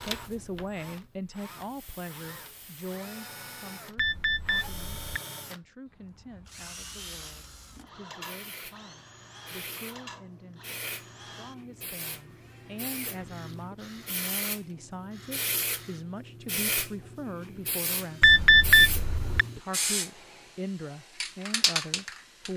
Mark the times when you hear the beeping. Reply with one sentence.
You can hear the beeping from 4.0 to 5.2 s and from 18.2 to 19.4 s.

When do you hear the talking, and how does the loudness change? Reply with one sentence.
The talking can be heard from 0.0 to 22.5 s, getting quieter then louder.